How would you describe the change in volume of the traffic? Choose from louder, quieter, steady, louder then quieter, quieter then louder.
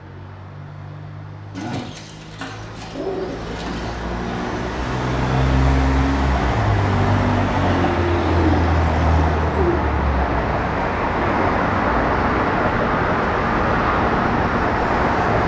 louder.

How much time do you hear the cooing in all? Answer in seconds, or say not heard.
4 s.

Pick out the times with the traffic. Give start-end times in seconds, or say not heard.
0.0-15.4.